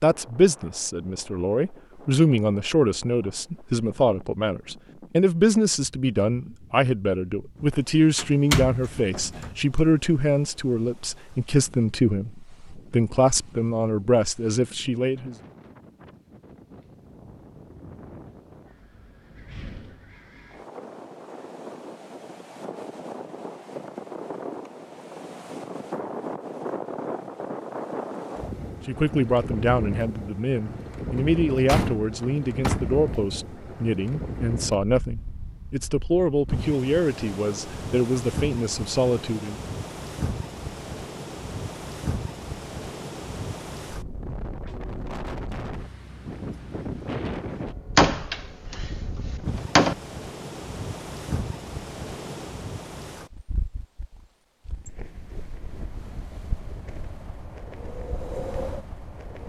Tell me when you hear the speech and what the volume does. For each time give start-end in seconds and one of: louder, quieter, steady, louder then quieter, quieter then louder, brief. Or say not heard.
0.0-15.3 steady
28.9-39.6 steady.